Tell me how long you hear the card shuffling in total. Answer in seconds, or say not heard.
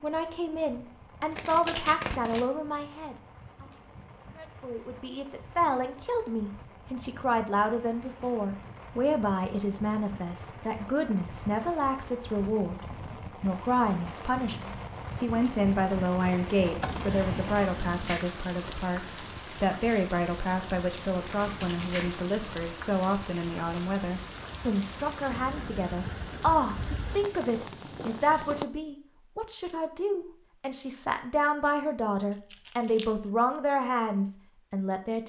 2 s.